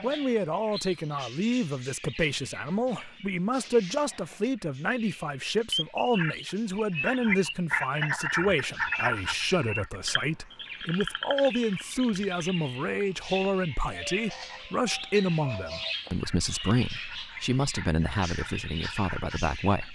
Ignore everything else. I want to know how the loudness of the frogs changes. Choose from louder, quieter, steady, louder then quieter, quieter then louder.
quieter.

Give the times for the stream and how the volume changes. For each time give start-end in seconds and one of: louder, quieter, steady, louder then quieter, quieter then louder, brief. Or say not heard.
not heard.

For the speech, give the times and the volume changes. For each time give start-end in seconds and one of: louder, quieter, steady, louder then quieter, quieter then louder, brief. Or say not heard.
0.0-19.8 steady.